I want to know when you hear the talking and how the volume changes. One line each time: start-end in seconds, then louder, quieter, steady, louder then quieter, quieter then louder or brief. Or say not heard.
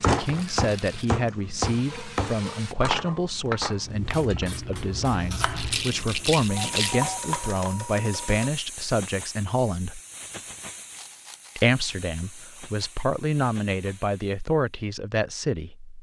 0.1-10.0 steady
11.6-15.9 louder.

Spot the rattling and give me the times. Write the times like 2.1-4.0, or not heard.
0.2-1.1, 5.5-7.1, 10.9-11.7.